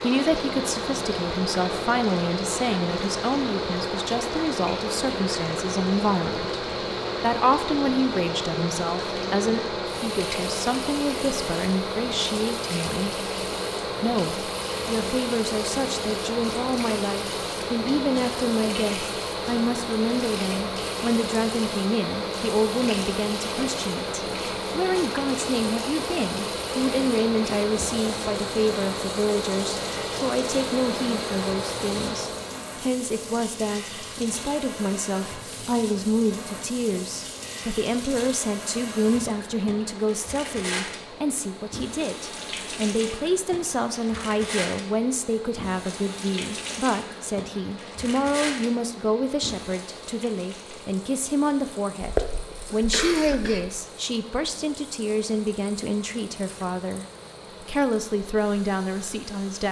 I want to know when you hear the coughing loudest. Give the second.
52 s.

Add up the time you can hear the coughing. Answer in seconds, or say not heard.
2 s.